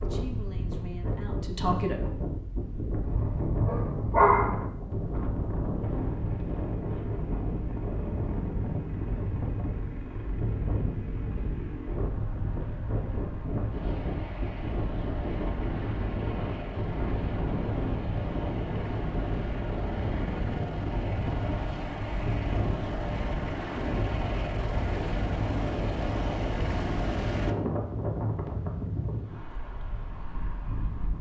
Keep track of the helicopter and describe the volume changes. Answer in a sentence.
The volume of the helicopter goes up.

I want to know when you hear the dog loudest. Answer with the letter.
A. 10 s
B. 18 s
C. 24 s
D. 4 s
D.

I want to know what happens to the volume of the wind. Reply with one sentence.
The loudness of the wind stays about the same.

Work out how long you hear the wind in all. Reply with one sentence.
You can hear the wind for 31 seconds altogether.